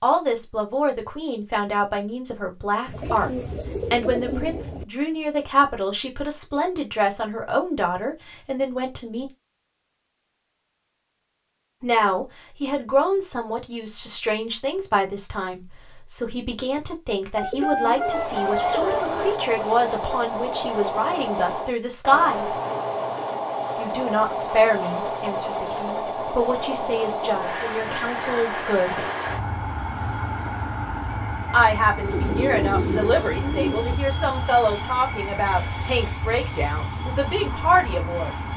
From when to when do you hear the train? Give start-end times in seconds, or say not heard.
17.9-38.5.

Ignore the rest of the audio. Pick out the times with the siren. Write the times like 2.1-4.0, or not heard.
not heard.